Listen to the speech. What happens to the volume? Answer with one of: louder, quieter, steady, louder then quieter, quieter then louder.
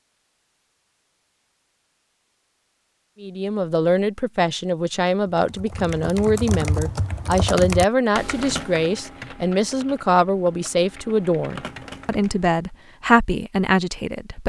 steady.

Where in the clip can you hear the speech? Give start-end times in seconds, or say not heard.
3.2-14.4.